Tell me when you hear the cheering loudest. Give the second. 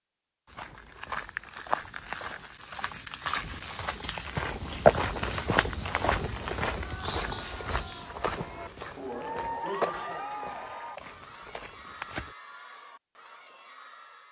10 s.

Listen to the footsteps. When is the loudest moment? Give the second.
5 s.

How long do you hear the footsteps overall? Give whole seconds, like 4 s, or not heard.
12 s.